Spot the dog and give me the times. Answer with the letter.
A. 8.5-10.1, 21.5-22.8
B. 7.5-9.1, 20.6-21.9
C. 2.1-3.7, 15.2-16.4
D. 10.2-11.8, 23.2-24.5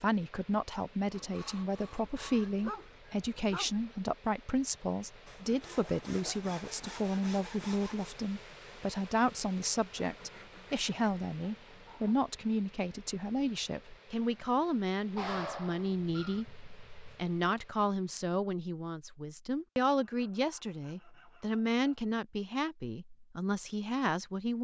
C.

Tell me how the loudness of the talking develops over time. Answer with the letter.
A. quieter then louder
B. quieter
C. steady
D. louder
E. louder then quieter
C.